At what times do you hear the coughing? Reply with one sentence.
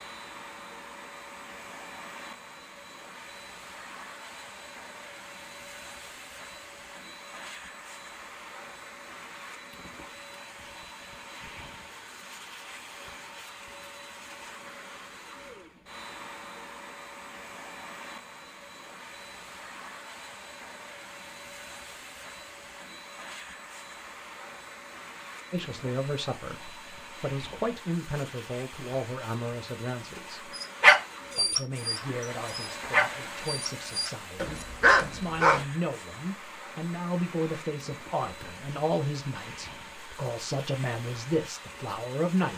You can't hear the coughing here.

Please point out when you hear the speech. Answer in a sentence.
The speech can be heard from 25.5 to 30.4 s and from 31.4 to 42.5 s.